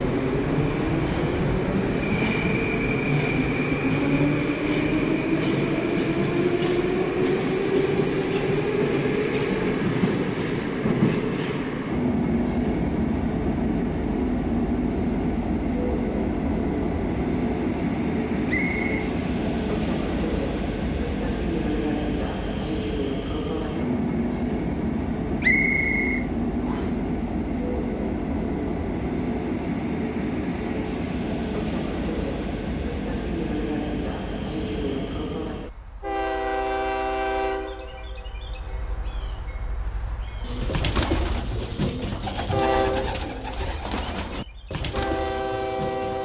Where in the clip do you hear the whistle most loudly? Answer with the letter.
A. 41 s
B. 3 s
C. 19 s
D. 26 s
D.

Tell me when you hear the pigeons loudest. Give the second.
41 s.